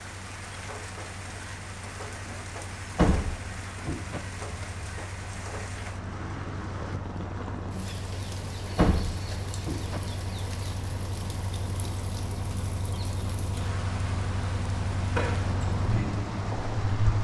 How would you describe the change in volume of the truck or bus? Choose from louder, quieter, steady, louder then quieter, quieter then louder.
louder.